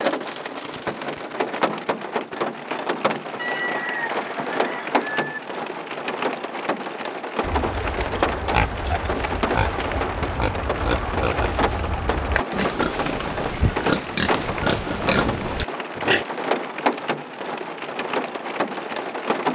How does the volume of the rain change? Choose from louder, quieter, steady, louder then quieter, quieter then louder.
steady.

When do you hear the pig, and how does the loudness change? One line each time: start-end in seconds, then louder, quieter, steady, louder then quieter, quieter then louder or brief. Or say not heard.
7.4-16.2 steady.